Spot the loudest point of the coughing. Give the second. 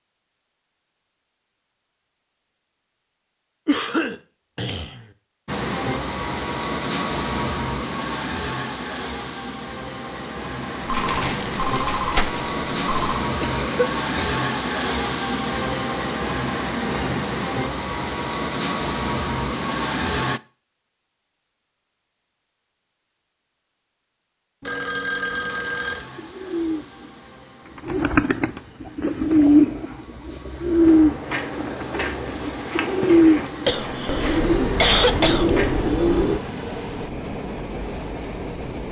35 s.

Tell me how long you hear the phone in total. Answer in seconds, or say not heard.
4 s.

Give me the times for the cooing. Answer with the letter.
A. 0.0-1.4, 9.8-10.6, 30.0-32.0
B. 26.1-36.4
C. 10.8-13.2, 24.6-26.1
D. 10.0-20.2
B.